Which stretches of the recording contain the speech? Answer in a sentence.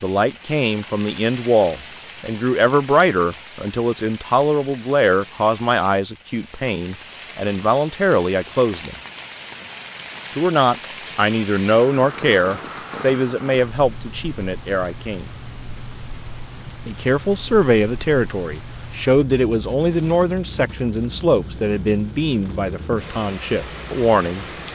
The speech can be heard from 0.0 to 8.9 s, from 10.3 to 15.2 s and from 16.9 to 24.4 s.